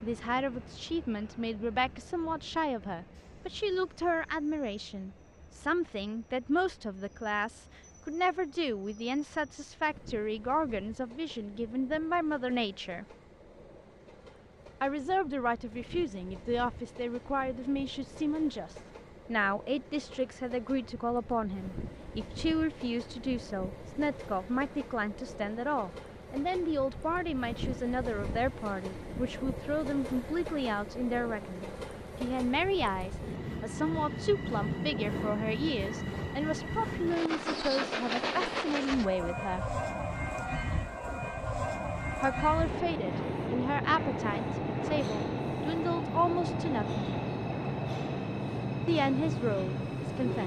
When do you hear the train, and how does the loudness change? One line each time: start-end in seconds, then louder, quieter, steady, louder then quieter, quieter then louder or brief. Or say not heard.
0.0-50.4 louder.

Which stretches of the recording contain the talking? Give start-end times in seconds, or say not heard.
0.0-13.1, 14.8-39.8, 42.2-47.0, 48.9-50.4.